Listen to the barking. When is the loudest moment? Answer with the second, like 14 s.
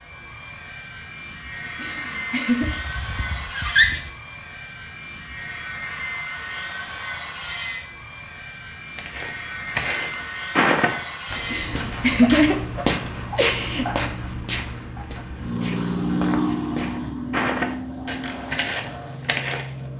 4 s.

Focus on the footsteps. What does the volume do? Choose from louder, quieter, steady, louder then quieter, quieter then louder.
quieter then louder.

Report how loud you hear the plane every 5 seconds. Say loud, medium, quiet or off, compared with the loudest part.
medium, medium, medium, loud.